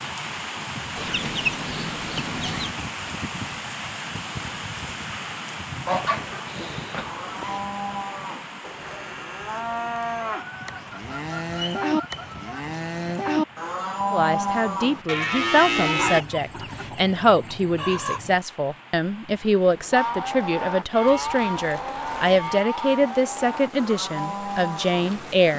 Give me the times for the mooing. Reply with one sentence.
The mooing can be heard from 7.0 to 16.2 s and from 19.9 to 25.5 s.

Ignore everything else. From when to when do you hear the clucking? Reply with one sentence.
You can hear the clucking from 0.9 to 2.9 s, from 5.8 to 7.6 s, from 10.4 to 12.7 s, from 15.9 to 18.4 s and from 21.1 to 22.6 s.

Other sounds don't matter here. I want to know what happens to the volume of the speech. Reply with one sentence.
The volume of the speech stays about the same.